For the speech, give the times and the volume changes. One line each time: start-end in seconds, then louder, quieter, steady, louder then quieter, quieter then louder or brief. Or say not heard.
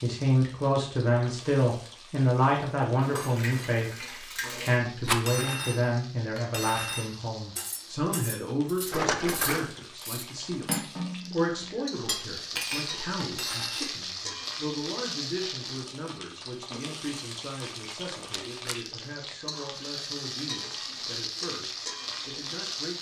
0.0-22.9 quieter.